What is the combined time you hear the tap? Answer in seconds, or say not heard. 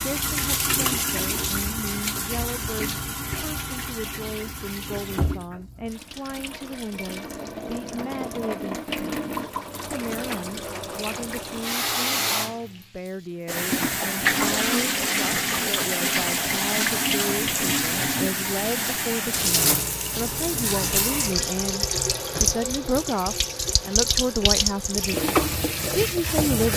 27 s.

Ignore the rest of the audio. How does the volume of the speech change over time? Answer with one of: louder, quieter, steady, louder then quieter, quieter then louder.
louder.